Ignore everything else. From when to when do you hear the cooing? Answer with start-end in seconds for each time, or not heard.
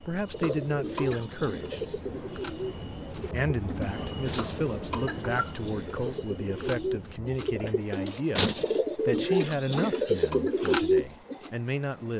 0.3-11.5.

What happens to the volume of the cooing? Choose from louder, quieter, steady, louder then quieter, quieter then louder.
quieter then louder.